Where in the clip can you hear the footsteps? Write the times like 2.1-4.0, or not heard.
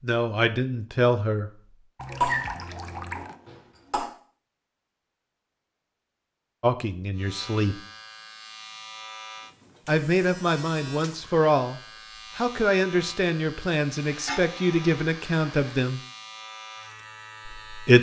not heard.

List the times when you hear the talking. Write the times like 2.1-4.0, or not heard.
0.0-1.5, 6.6-7.8, 9.8-16.0, 17.4-17.9.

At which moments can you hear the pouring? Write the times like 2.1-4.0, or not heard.
1.9-3.4.